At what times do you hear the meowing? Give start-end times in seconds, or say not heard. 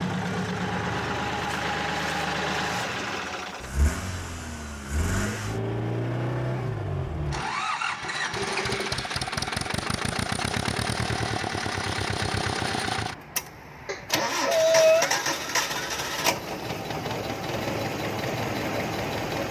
13.8-15.2.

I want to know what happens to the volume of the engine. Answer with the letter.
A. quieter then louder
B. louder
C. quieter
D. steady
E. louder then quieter
D.